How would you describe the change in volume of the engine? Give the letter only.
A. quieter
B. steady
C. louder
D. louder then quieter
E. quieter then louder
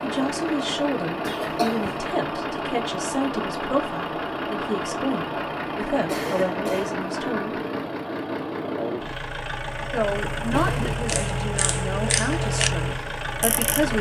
B.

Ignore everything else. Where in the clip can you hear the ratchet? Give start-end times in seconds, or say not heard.
11.1-13.9.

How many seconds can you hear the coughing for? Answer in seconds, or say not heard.
3 s.